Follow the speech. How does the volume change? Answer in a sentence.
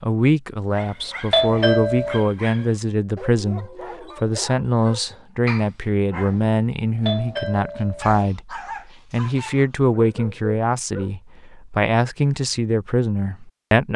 The volume of the speech stays about the same.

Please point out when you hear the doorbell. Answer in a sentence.
You can hear the doorbell from 1.3 to 2.2 s and from 7.0 to 8.2 s.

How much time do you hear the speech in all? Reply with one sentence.
You can hear the speech for 14 seconds altogether.